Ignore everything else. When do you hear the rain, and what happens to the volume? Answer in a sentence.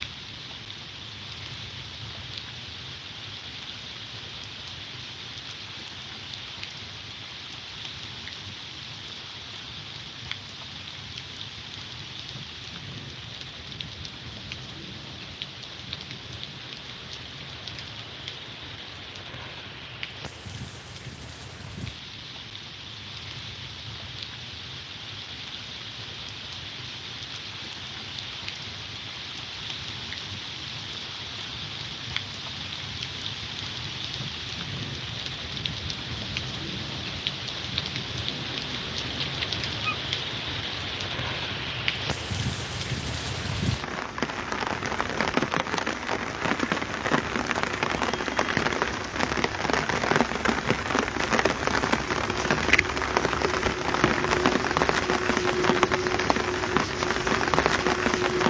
The rain can be heard from 0.0 to 58.4 s, getting louder.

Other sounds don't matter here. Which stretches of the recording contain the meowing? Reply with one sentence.
The meowing can be heard from 38.2 to 40.0 s.